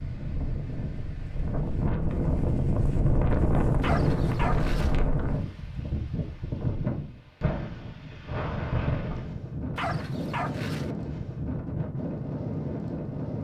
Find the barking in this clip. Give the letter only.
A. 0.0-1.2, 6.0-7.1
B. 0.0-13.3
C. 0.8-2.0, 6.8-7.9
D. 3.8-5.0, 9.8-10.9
D.